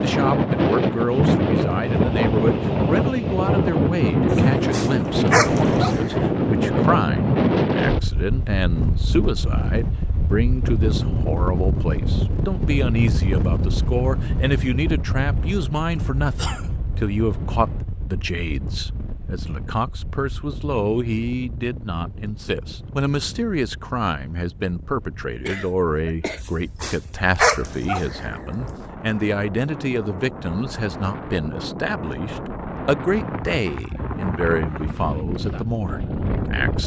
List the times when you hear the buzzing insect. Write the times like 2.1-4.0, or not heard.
not heard.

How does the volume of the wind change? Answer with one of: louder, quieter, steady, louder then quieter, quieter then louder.
quieter then louder.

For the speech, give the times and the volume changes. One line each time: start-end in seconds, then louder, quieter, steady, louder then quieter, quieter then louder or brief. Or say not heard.
0.0-36.8 steady.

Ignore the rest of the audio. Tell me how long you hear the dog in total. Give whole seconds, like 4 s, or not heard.
4 s.